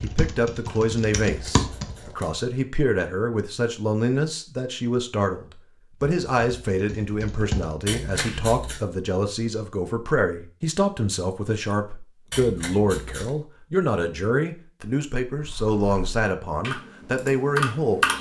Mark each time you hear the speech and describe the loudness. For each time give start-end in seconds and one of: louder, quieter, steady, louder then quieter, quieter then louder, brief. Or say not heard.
0.0-18.1 steady.